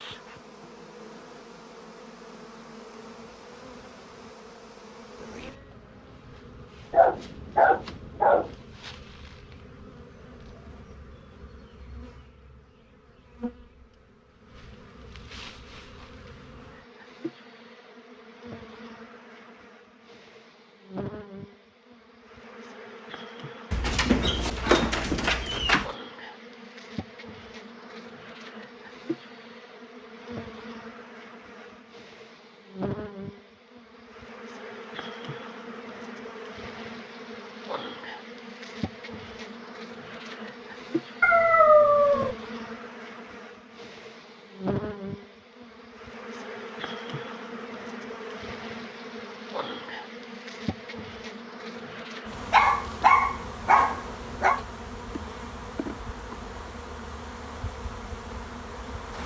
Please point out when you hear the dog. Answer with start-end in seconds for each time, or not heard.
6.9-8.6, 23.7-25.9, 41.2-42.4, 52.5-54.6.